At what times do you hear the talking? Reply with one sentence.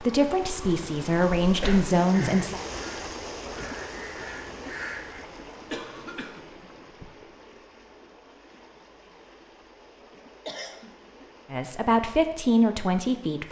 The talking can be heard from 0.0 to 2.6 s and from 11.5 to 13.4 s.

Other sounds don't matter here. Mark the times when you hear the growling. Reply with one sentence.
The growling can't be heard in this clip.